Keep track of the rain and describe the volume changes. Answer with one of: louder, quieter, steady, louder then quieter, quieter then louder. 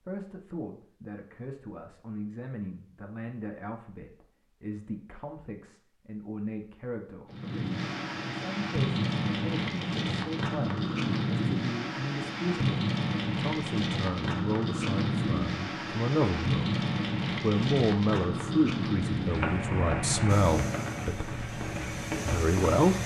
steady.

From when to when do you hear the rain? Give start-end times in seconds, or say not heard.
7.3-23.0.